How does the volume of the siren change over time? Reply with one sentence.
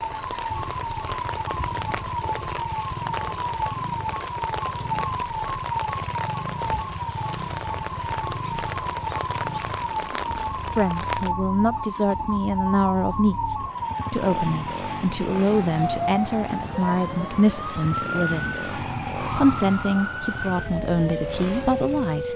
The loudness of the siren stays about the same.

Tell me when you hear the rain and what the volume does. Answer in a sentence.
You can hear the rain from 0.0 to 11.3 s, at a steady volume.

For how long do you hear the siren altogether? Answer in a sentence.
You can hear the siren for 22 seconds altogether.